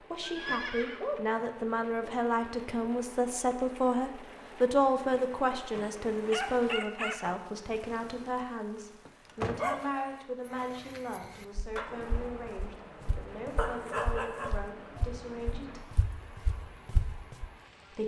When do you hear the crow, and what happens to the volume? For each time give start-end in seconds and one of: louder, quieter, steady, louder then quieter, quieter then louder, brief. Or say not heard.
not heard.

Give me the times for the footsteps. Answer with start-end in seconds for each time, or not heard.
11.6-17.5.